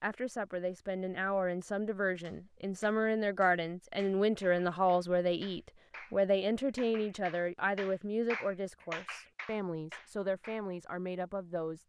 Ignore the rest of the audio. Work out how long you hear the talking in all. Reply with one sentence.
The talking can be heard for 12 seconds in total.